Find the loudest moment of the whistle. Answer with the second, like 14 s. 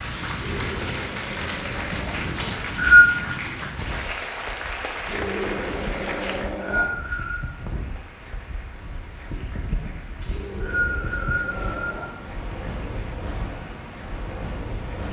3 s.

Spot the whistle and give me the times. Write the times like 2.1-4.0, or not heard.
2.4-3.1, 6.2-7.5, 10.2-12.1.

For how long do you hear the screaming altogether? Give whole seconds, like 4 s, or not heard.
5 s.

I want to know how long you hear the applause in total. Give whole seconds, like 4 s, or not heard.
15 s.